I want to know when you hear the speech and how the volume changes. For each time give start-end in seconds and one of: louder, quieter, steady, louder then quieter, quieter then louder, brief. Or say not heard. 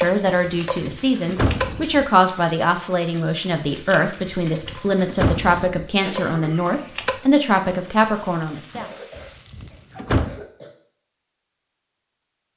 0.0-8.8 steady.